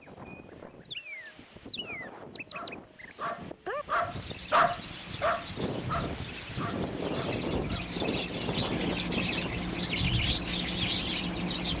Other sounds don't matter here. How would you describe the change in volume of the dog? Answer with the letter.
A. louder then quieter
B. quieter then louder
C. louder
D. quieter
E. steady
A.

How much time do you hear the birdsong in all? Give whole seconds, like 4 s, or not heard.
12 s.